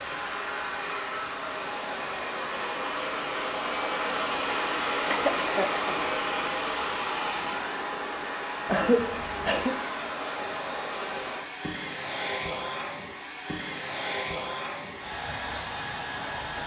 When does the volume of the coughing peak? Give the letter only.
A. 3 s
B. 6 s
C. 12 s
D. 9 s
D.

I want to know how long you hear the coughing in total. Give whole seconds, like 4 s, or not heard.
2 s.